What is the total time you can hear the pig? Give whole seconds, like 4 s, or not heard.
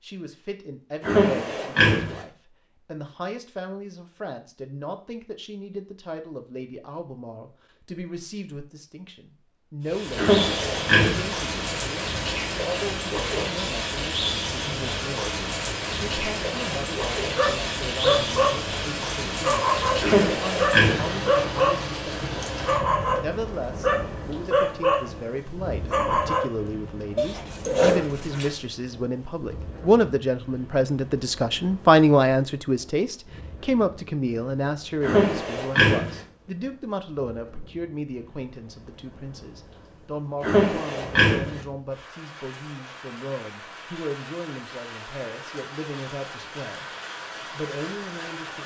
6 s.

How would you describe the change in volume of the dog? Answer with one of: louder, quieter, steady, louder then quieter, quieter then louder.
steady.